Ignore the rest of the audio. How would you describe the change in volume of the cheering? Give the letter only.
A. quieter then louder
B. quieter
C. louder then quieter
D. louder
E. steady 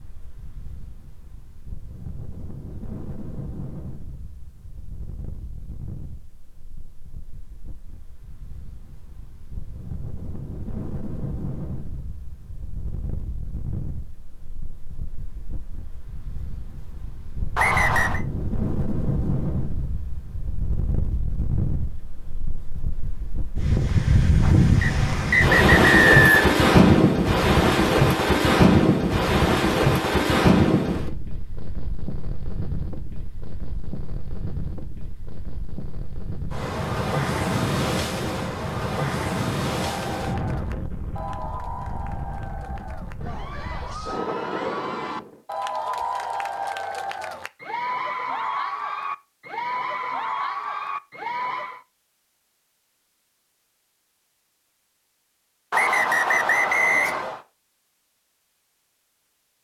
D.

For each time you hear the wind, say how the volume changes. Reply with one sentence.
The wind can be heard from 0.0 to 45.4 s, getting louder then quieter.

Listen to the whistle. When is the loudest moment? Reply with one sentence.
The volume of the whistle peaks at 26 seconds.